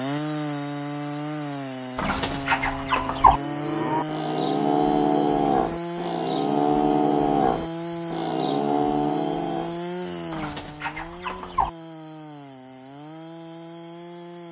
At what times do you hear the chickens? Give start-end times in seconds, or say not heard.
1.9-3.4, 10.3-11.7.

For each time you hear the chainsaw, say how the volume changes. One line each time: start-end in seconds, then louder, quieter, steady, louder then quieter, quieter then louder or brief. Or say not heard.
0.0-14.4 quieter.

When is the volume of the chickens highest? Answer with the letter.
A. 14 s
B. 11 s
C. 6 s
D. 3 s
D.